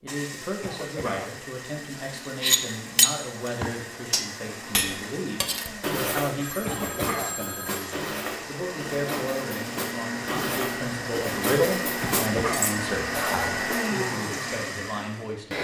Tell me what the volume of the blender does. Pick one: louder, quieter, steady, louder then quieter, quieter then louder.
louder.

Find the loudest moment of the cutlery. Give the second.
3 s.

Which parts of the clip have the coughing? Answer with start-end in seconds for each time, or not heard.
0.6-1.4, 6.6-7.4, 12.0-12.7.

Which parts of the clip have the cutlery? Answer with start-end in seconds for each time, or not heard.
2.4-13.8.